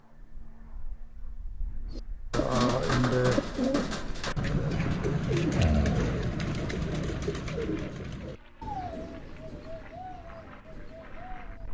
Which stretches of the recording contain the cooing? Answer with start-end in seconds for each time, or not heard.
1.9-11.6.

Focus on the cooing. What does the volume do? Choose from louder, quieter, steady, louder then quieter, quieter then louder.
quieter.